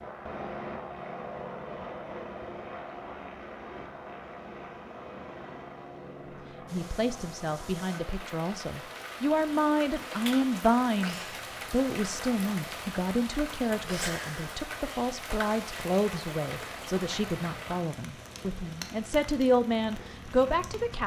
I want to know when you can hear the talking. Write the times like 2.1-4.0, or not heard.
6.7-21.0.